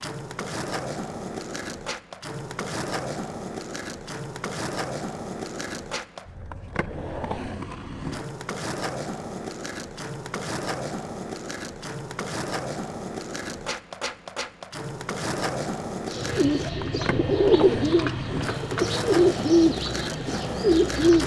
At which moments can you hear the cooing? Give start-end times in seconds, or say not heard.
16.1-21.2.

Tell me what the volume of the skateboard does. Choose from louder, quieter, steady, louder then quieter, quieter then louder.
steady.